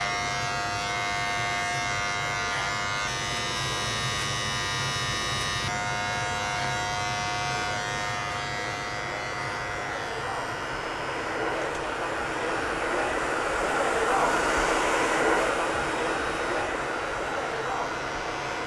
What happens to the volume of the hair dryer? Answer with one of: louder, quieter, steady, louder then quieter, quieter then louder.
louder.